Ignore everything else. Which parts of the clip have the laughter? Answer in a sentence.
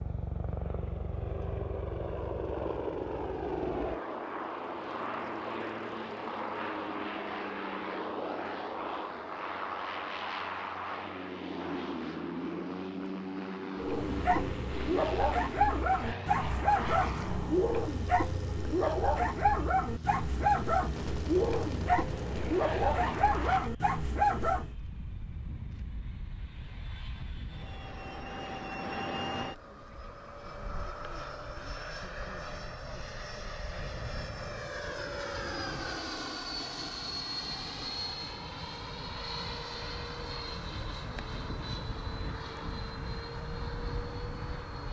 You can't hear the laughter here.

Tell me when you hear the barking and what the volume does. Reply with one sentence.
The barking can be heard from 13.8 to 24.7 s, at a steady volume.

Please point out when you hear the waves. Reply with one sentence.
You can't hear the waves here.